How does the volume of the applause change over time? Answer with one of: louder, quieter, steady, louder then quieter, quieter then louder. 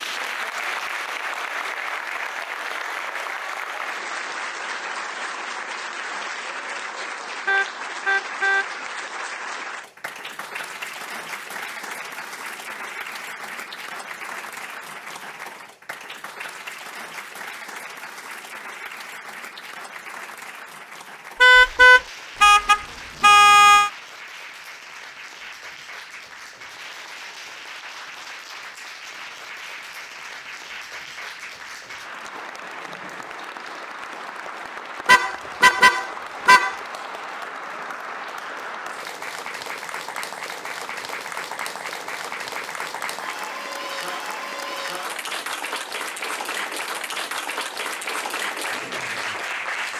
quieter then louder.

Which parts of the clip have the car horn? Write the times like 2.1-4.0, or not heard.
7.5-8.7, 21.4-23.9, 35.0-36.8.